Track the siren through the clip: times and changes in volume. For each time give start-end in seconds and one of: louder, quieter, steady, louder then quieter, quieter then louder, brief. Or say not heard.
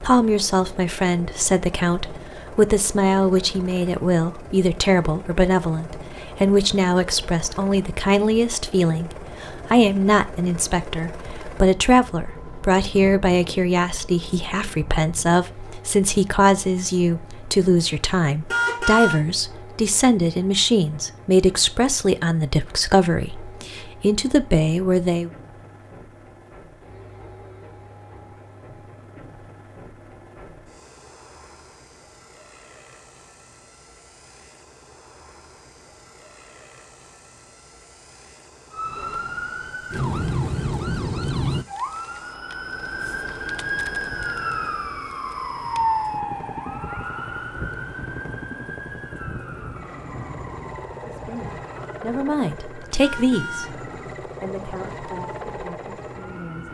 38.7-56.6 quieter.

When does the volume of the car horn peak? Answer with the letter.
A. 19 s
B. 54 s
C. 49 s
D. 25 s
A.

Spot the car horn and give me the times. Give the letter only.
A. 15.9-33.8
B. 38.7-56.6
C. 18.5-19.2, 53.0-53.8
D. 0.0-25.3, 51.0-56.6
C.